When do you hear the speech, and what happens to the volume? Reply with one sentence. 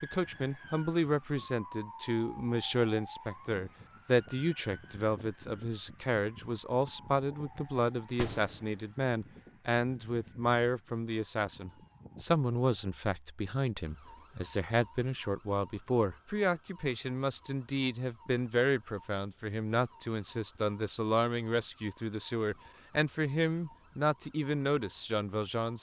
You can hear the speech from 0.0 to 25.7 s, at a steady volume.